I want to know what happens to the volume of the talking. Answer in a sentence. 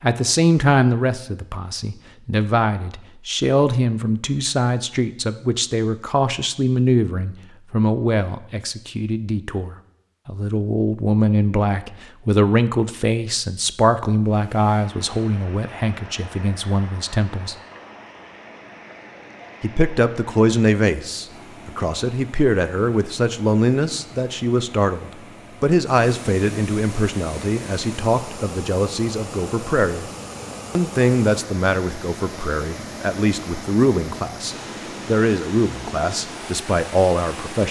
The loudness of the talking stays about the same.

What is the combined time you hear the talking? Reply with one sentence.
The talking can be heard for 35 seconds in total.